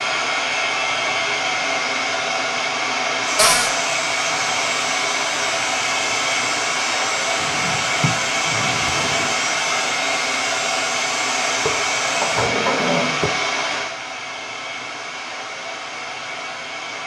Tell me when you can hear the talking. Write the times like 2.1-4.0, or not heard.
not heard.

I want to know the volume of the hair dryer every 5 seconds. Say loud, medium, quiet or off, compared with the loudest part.
loud, loud, loud, medium.